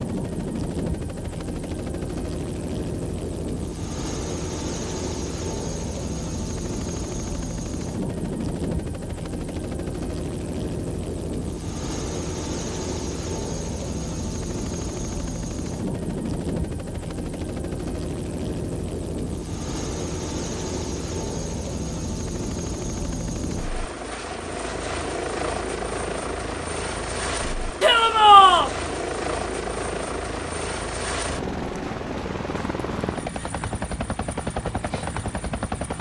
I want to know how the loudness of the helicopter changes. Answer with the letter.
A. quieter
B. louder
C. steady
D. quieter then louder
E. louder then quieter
C.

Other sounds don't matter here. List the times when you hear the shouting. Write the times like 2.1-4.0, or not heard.
27.8-28.7.